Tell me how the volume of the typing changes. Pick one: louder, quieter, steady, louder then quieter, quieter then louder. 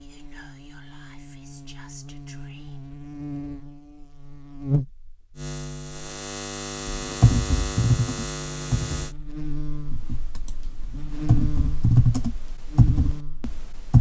quieter then louder.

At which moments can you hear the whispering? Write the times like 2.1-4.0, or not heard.
0.0-2.9.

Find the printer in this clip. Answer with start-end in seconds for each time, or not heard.
not heard.